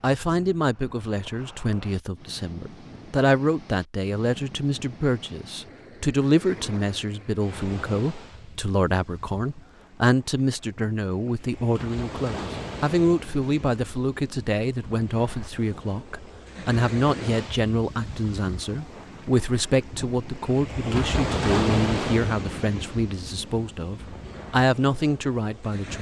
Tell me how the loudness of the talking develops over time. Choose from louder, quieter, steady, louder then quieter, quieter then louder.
steady.